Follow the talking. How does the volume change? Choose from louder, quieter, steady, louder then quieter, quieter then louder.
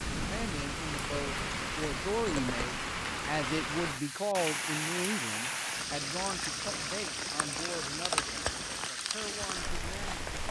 quieter.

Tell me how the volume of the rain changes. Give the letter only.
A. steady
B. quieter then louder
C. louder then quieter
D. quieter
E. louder
A.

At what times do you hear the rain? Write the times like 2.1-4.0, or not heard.
0.0-10.4.